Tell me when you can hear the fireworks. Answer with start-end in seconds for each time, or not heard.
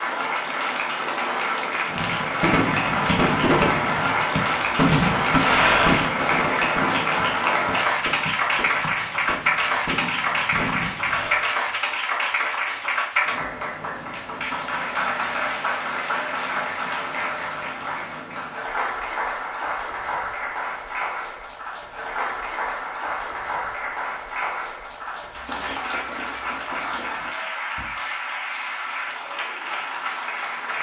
1.9-11.5.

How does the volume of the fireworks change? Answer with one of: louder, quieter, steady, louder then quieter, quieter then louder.
quieter.